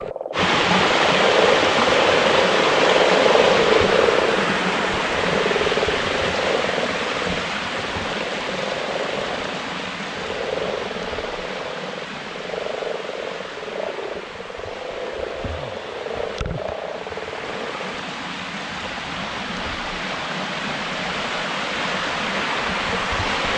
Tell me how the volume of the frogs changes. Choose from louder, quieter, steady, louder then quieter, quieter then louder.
quieter.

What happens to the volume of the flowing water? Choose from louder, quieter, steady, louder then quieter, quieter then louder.
quieter then louder.